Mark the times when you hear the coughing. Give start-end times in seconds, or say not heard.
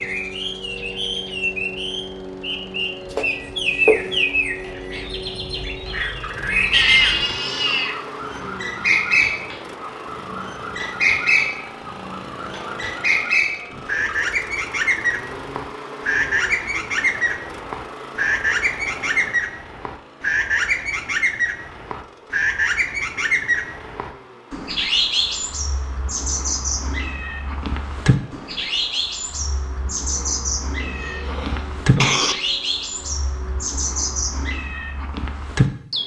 3.1-4.2, 30.8-32.4.